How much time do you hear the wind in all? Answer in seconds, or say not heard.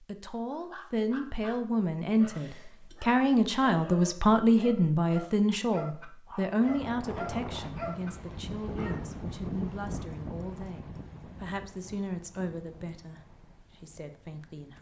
8 s.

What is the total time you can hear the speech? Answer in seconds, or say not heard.
15 s.